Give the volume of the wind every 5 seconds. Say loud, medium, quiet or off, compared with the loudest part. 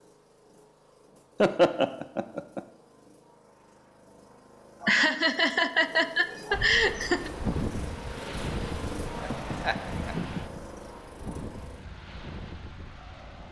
off, loud, medium.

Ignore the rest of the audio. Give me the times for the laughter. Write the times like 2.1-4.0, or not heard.
1.4-2.6, 4.8-7.3, 9.2-10.6.